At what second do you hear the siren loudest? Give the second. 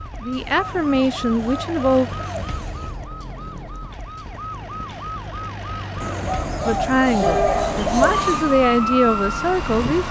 9 s.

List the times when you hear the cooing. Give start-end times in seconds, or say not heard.
0.3-3.0, 6.0-8.6.